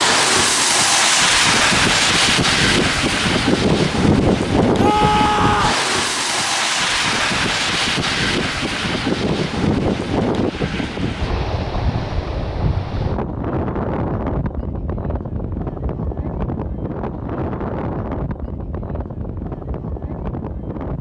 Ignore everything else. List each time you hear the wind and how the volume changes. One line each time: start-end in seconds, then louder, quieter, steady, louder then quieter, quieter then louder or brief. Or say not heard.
0.0-20.9 quieter.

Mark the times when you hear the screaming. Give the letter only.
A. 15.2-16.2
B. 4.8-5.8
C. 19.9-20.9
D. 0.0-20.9
B.